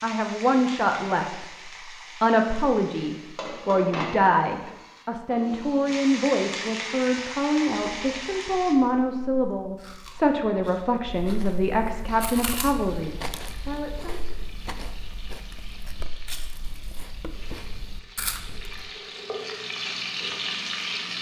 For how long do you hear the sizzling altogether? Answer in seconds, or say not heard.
18 s.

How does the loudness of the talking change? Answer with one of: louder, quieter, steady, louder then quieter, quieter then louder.
steady.